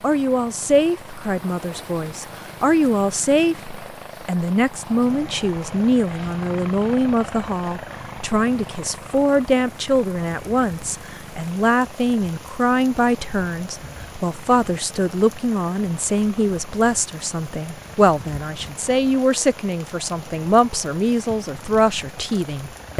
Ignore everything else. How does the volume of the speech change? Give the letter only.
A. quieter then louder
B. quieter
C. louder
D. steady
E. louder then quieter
D.